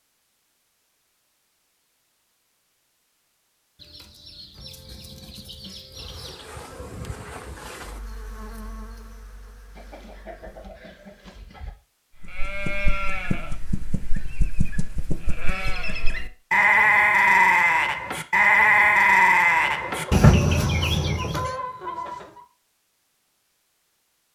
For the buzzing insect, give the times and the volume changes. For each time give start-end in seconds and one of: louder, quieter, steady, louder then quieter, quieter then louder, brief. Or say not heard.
5.9-10.8 quieter.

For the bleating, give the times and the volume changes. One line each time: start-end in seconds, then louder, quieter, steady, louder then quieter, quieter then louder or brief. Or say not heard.
12.2-21.5 louder.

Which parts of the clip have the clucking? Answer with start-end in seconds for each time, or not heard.
3.8-6.5, 9.8-11.7, 19.6-22.4.